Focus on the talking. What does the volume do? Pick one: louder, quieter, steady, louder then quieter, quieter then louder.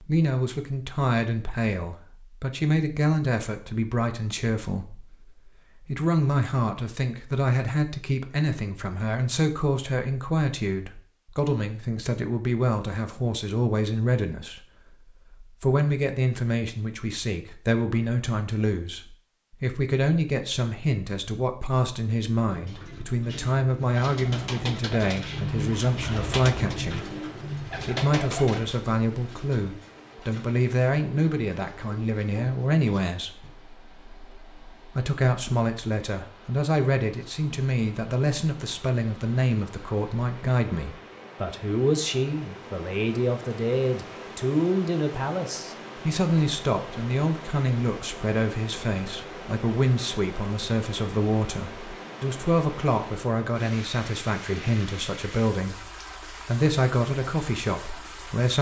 steady.